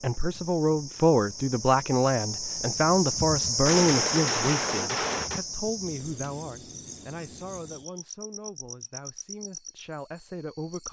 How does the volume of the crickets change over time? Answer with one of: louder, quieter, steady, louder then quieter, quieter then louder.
louder then quieter.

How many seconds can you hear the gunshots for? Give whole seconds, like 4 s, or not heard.
2 s.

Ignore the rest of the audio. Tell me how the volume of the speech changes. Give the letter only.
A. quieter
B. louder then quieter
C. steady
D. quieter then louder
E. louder
A.